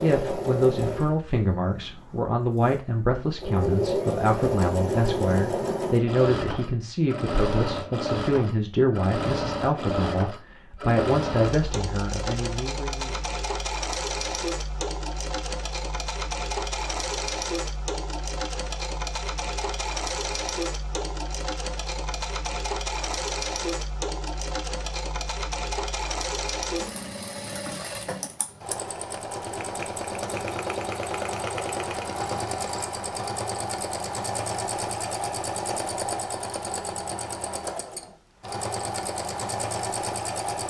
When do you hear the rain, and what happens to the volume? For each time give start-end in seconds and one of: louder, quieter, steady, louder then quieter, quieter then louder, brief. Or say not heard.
not heard.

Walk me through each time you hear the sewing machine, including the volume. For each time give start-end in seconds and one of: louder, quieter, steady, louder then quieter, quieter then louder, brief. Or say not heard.
0.0-40.6 steady.